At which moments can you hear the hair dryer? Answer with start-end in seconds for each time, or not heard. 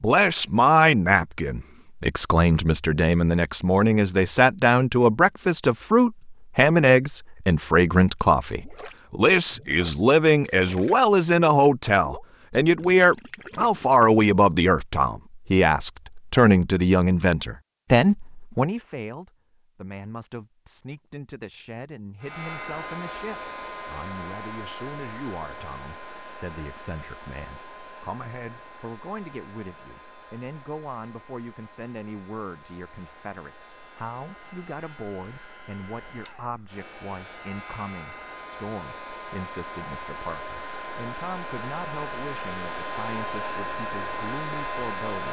22.2-45.2.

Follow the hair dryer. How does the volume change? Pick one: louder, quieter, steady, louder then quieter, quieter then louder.
quieter then louder.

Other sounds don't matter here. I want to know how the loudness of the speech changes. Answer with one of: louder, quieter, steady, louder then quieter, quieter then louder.
quieter.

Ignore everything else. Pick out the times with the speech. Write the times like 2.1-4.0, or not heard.
0.0-45.2.